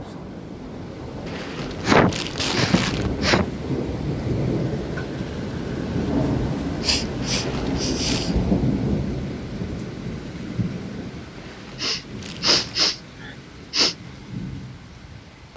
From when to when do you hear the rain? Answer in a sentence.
The rain can be heard from 0.0 to 15.5 s.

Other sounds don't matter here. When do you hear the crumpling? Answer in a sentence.
You can hear the crumpling from 1.2 to 3.1 s, from 7.2 to 8.4 s and from 11.3 to 12.9 s.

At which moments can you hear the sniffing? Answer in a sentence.
The sniffing can be heard from 1.8 to 3.5 s, from 6.8 to 8.3 s and from 11.8 to 13.9 s.